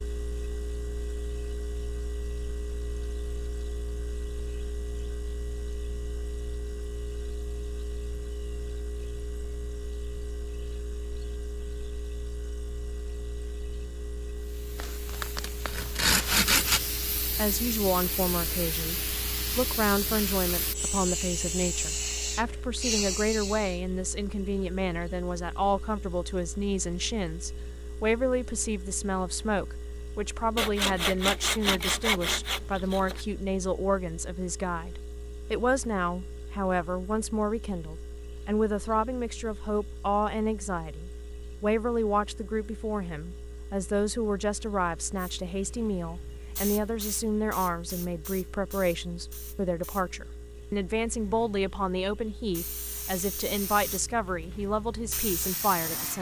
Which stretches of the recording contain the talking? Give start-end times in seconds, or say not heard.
17.4-56.1.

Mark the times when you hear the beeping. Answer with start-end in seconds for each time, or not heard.
not heard.